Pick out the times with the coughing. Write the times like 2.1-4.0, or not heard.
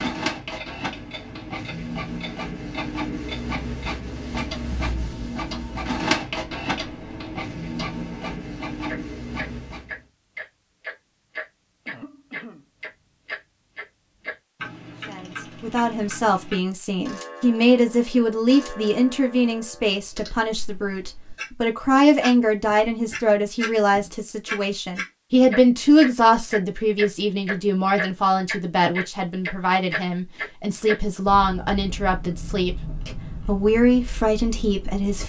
11.8-12.7.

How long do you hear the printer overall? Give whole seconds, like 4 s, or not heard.
10 s.